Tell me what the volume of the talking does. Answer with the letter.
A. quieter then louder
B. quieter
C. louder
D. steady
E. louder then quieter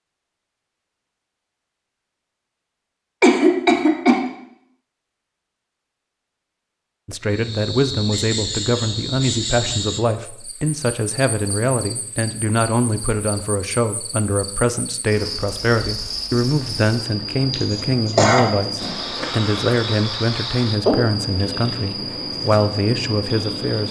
D.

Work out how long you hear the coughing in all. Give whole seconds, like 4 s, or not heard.
2 s.